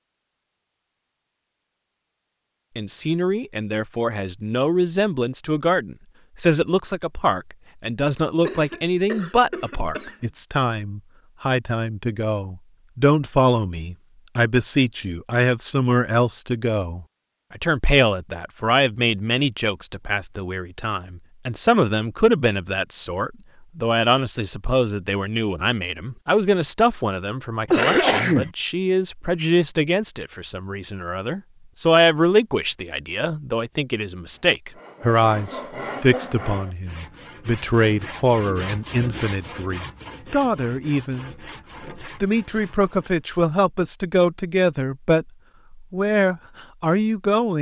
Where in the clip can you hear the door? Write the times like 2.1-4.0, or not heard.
not heard.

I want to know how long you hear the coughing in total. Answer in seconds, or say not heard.
3 s.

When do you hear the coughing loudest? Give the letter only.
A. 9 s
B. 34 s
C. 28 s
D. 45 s
C.